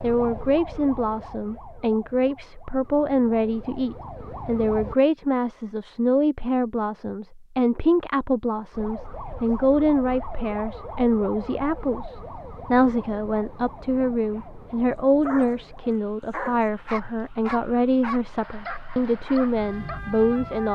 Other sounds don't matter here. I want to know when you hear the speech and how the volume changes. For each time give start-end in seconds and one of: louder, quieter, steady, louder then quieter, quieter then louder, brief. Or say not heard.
0.0-20.7 steady.